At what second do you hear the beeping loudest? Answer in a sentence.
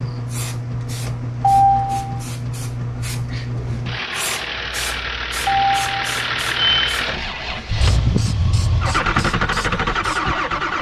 The volume of the beeping peaks at 2 seconds.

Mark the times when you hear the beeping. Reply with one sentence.
You can hear the beeping from 1.4 to 2.2 s and from 5.5 to 7.0 s.